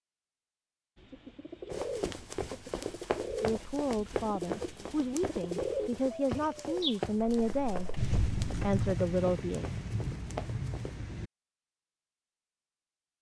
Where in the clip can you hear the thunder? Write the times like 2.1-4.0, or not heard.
8.0-11.3.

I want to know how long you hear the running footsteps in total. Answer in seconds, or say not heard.
9 s.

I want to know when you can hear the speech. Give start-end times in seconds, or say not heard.
3.4-9.7.